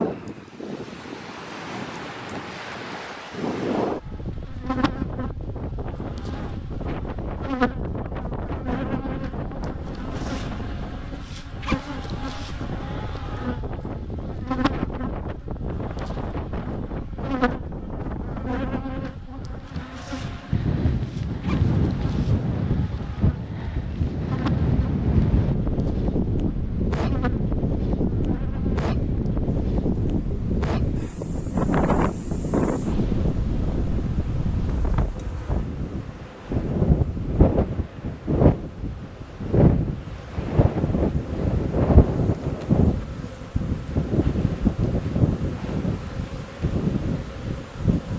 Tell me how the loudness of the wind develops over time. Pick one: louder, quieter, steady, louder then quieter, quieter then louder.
louder.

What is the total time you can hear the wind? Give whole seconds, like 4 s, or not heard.
48 s.